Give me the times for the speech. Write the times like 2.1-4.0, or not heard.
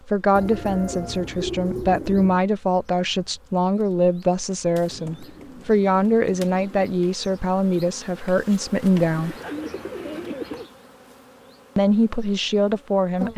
0.1-9.3, 11.8-13.3.